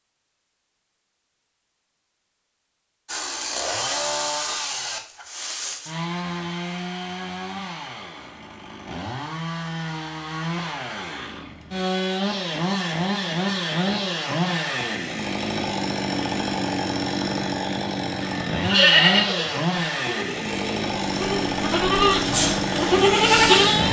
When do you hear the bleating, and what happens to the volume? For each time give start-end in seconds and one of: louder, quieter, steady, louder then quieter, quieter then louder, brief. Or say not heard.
18.6-23.8 quieter then louder.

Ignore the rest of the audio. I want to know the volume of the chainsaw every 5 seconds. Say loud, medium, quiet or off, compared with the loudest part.
loud, medium, loud, loud, loud.